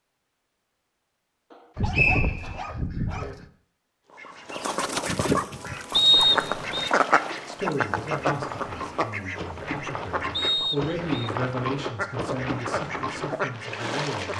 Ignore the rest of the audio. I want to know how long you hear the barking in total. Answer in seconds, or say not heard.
2 s.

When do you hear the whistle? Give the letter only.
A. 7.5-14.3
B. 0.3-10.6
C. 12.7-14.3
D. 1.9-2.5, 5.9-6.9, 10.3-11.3
D.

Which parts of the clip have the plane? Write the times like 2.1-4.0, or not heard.
not heard.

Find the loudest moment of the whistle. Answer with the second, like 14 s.
6 s.